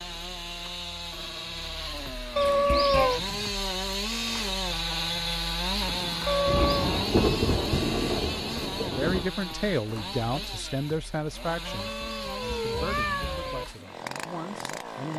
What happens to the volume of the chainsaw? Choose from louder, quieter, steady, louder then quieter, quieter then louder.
louder then quieter.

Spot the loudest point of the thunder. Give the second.
7 s.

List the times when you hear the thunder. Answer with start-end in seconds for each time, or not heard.
6.5-9.3.